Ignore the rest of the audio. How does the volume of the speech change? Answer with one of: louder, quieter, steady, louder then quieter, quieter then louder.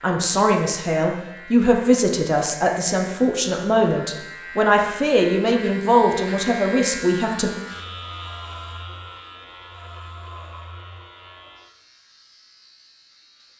steady.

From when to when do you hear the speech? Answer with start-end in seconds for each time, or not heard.
0.0-7.5.